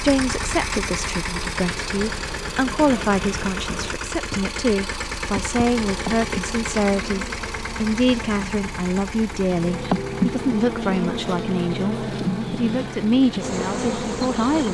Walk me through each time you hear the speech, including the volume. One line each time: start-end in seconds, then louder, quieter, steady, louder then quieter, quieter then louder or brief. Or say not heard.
0.0-14.6 steady.